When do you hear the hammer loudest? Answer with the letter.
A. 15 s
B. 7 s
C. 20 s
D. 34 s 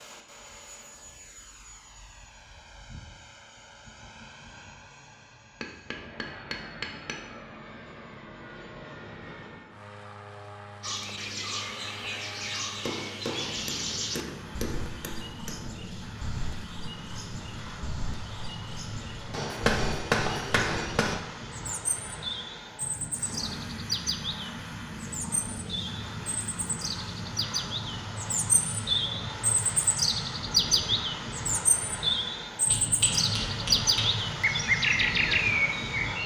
C.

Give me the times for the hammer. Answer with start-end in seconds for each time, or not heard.
5.6-7.2, 12.8-15.7, 19.3-21.1, 32.7-34.2.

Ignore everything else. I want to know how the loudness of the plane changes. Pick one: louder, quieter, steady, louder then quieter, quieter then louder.
louder.